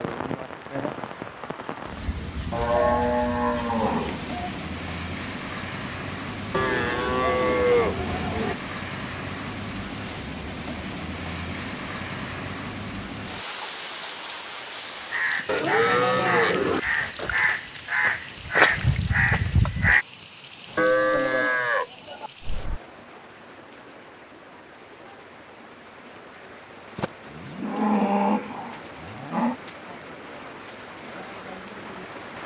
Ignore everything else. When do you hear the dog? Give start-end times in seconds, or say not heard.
not heard.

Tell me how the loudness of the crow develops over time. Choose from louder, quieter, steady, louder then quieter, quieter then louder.
louder.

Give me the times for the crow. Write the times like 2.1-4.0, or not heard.
15.0-20.1.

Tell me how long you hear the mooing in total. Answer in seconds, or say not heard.
10 s.